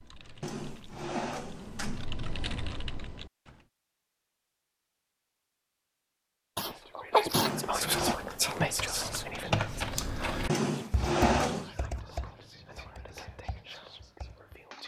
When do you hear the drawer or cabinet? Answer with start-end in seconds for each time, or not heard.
0.4-2.0, 7.3-8.2, 10.4-11.7.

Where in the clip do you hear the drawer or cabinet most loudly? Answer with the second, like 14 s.
11 s.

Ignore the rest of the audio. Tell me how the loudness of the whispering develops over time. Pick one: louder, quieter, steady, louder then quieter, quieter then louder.
quieter.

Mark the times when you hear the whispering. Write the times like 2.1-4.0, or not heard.
6.6-14.8.